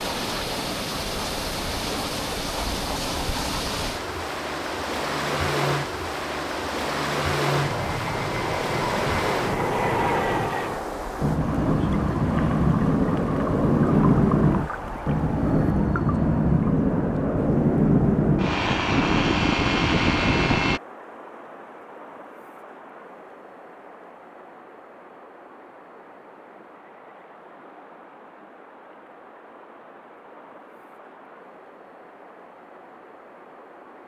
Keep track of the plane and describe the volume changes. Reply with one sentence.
The loudness of the plane goes up.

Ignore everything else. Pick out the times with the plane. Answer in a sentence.
You can hear the plane from 0.0 to 20.8 s.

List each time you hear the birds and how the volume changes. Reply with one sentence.
You can't hear the birds here.